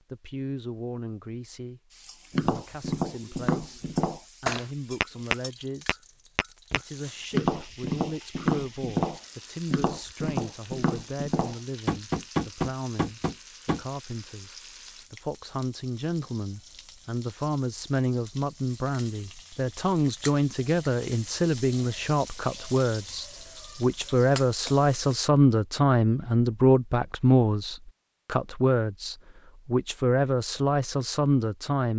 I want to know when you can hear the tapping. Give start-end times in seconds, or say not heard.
2.3-13.8.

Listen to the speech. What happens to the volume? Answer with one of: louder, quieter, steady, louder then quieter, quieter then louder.
louder.